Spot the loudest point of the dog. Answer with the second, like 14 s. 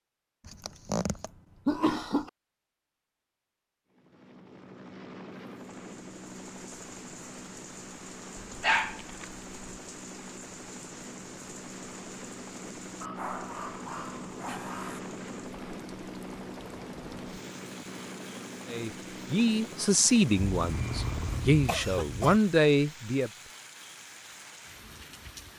9 s.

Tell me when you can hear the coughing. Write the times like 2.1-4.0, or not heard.
0.5-2.3, 20.6-22.4.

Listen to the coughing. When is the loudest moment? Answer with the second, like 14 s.
2 s.